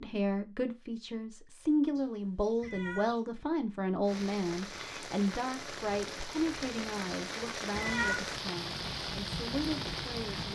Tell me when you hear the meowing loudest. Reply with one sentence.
The loudest moment of the meowing is at 8 seconds.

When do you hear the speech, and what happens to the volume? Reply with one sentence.
The speech can be heard from 0.0 to 10.5 s, getting quieter.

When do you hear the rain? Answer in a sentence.
The rain can be heard from 4.0 to 10.5 s.